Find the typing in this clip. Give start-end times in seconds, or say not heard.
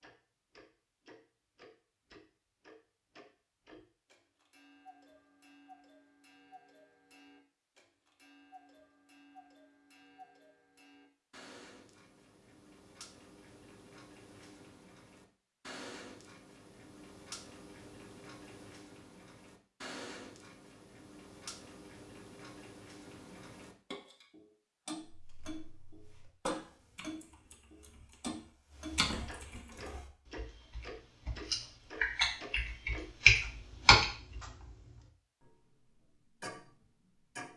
25.1-34.4.